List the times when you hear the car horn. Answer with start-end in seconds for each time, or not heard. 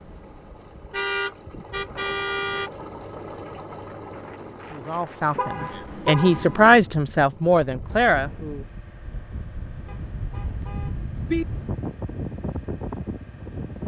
0.9-2.7, 5.3-6.8, 9.8-11.4.